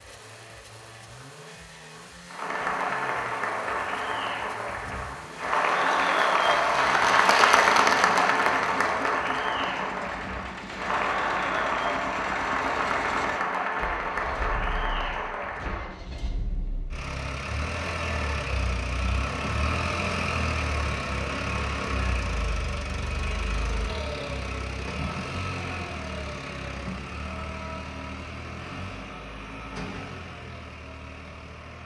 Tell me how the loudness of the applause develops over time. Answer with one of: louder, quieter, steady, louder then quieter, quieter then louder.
louder then quieter.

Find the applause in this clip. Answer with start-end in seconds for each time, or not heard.
2.2-15.9.